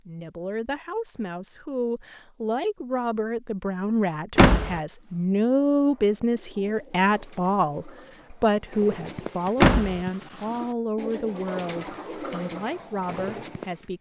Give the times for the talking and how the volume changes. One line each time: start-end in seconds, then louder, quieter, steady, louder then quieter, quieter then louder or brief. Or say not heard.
0.1-13.9 louder then quieter.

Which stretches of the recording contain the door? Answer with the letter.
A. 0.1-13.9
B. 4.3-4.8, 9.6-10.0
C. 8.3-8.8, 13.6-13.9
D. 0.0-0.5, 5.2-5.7
B.